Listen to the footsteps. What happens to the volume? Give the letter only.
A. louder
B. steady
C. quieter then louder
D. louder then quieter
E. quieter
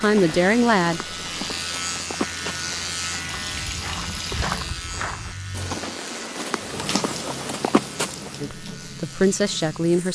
A.